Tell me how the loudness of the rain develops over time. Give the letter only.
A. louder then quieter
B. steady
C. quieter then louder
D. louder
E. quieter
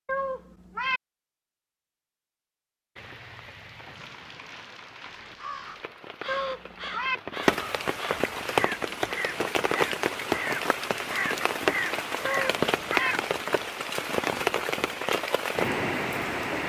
D.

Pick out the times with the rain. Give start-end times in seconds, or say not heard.
3.0-16.6.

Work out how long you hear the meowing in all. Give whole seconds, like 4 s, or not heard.
3 s.